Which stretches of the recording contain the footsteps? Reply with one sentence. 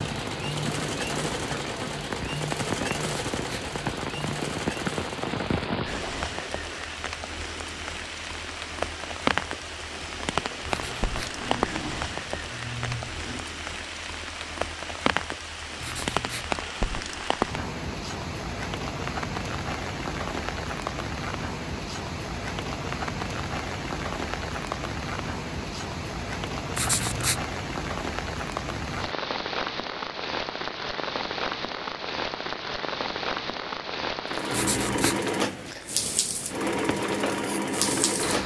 You can't hear the footsteps here.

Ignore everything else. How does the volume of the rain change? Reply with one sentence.
The loudness of the rain stays about the same.